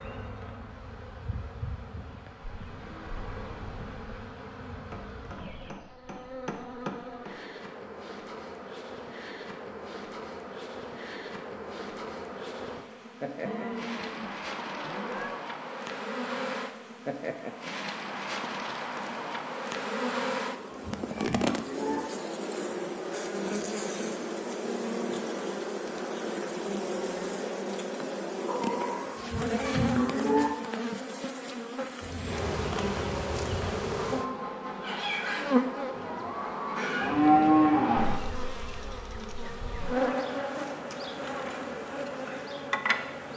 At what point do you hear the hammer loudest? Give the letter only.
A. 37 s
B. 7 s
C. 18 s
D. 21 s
B.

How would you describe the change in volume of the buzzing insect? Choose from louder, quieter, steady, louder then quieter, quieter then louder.
louder.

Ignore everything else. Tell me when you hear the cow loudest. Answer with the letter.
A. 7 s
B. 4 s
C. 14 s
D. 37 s
D.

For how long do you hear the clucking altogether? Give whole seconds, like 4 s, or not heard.
5 s.